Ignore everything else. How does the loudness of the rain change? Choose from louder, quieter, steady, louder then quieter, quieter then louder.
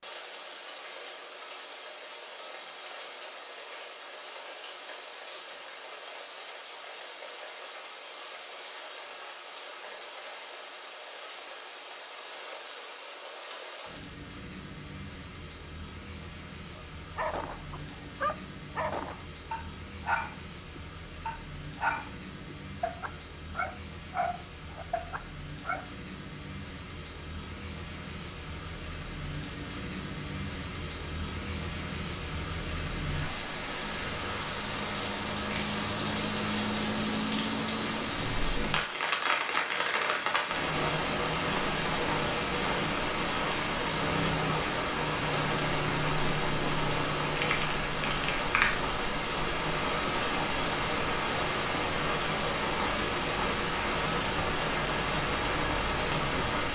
louder.